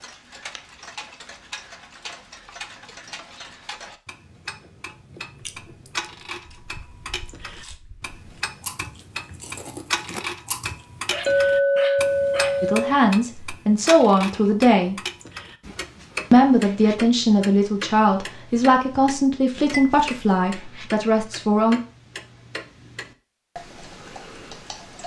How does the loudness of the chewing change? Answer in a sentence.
The volume of the chewing goes down, then up.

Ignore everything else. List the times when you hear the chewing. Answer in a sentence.
You can hear the chewing from 4.2 to 10.8 s.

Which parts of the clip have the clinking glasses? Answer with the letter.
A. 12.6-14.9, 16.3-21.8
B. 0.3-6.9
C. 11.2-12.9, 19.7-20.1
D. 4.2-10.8
C.